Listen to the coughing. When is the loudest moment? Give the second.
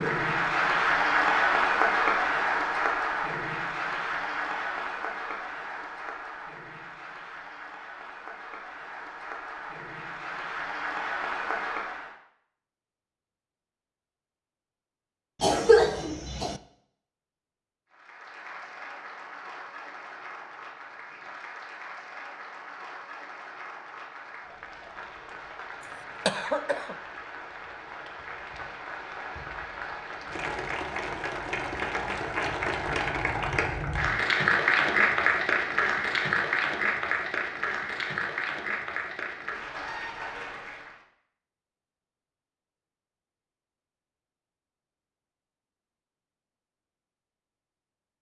16 s.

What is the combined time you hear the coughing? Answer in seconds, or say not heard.
2 s.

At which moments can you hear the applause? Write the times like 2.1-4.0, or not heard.
0.0-12.2, 17.9-41.0.